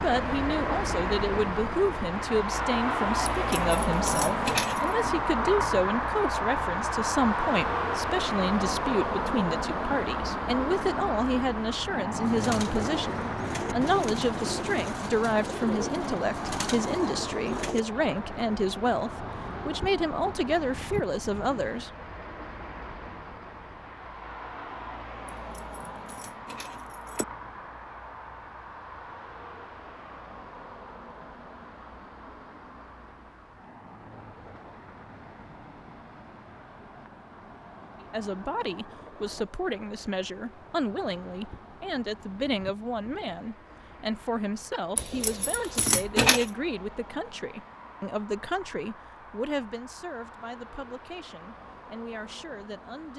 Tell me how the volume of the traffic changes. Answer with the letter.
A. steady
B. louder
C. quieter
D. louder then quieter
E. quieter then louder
C.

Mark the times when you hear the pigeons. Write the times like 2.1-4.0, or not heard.
12.2-17.9.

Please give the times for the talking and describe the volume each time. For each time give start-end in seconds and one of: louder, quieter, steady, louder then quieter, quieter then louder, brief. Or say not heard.
0.0-21.9 steady
38.0-53.1 quieter.